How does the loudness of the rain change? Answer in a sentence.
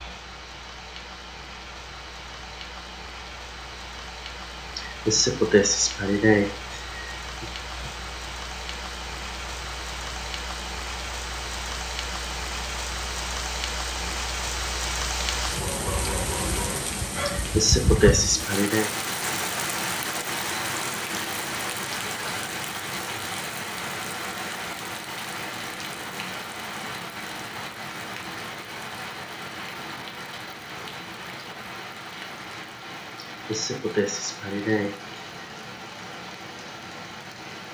The volume of the rain goes up, then down.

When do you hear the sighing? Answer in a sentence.
You can hear the sighing from 4.8 to 7.5 s, from 17.4 to 18.9 s and from 33.3 to 35.5 s.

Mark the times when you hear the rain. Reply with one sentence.
You can hear the rain from 0.0 to 37.6 s.